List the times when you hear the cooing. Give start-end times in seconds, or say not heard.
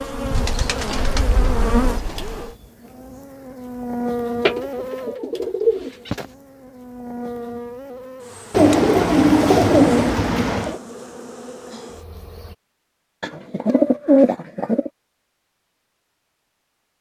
0.3-2.5, 4.4-6.2, 8.5-10.8, 13.2-14.9.